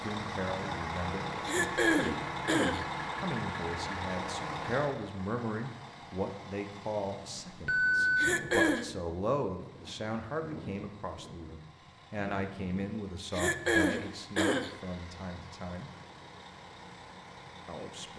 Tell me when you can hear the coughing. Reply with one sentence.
The coughing can be heard from 1.4 to 2.9 s, from 8.2 to 8.8 s and from 13.3 to 14.8 s.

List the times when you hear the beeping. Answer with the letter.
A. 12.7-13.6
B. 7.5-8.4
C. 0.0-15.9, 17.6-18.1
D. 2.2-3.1
B.